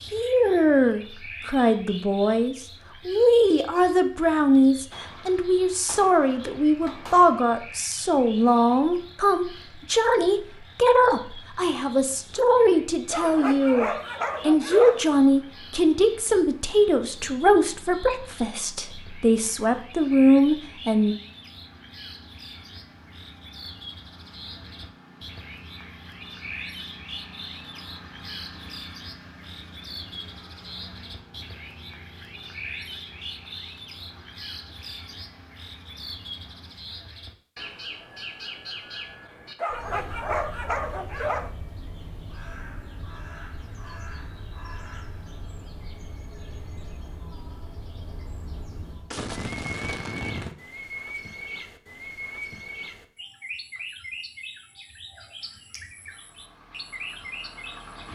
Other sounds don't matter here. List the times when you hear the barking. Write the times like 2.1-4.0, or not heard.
13.1-15.1, 39.5-41.5.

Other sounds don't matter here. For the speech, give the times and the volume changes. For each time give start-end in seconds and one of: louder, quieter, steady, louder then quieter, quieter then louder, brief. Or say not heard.
0.1-21.1 steady.